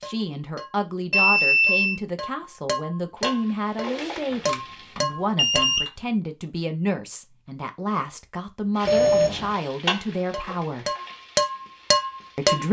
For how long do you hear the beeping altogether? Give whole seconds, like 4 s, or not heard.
3 s.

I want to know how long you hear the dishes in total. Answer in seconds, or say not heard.
8 s.